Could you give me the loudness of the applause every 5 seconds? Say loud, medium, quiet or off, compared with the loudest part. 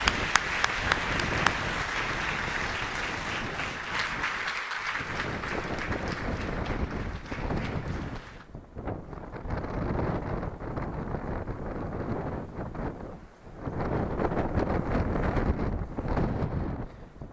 loud, medium, off, off.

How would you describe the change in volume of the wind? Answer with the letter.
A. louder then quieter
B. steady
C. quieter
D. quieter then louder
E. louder
E.